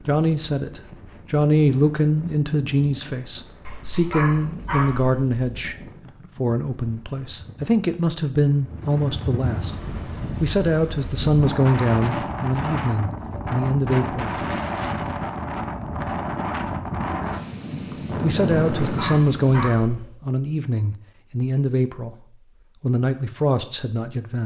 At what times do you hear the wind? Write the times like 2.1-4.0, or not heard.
0.0-19.7.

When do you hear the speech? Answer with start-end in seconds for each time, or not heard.
0.1-5.8, 6.3-9.7, 10.4-14.3, 18.2-22.1, 22.8-24.4.